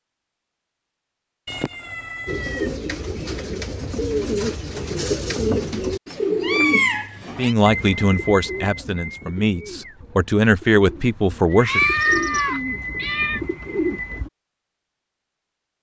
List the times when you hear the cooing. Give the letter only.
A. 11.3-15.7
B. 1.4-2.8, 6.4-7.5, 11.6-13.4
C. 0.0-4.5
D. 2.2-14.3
D.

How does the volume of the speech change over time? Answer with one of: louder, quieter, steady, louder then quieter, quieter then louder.
quieter then louder.